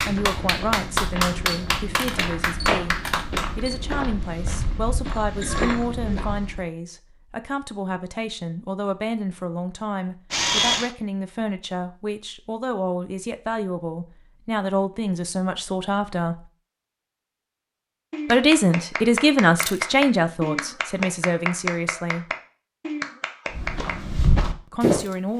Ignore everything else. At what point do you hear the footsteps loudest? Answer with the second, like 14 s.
25 s.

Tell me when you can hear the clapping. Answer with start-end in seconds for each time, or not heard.
0.0-3.5, 18.1-24.1.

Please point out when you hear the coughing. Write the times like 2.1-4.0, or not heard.
5.0-6.0.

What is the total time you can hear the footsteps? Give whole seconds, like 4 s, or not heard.
8 s.